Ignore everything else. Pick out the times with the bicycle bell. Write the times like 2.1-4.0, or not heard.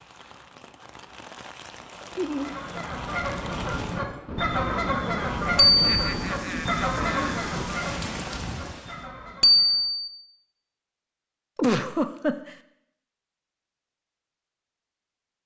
5.5-6.1, 9.4-10.1.